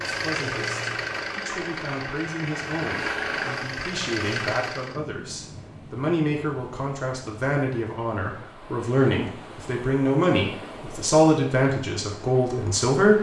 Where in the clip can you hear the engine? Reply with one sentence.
The engine can be heard from 0.0 to 5.0 s.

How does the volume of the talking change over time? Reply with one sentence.
The volume of the talking goes up.